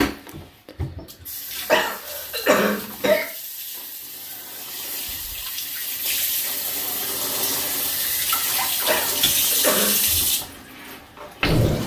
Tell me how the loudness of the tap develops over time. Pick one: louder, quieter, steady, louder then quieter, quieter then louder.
louder.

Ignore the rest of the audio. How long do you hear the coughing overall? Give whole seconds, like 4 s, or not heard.
3 s.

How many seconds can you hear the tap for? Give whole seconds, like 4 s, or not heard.
12 s.